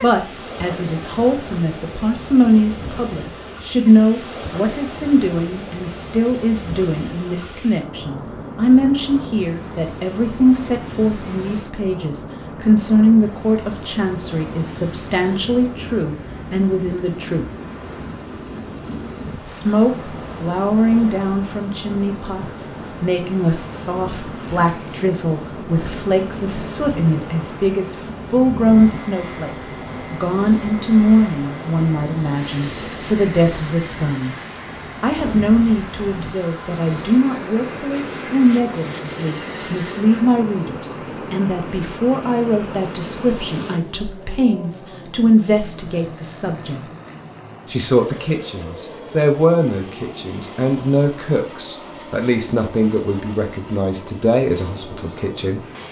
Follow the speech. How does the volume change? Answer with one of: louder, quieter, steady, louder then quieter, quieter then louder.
steady.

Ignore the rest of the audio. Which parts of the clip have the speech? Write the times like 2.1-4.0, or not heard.
0.0-17.4, 19.4-34.4, 35.0-46.9, 47.6-55.6.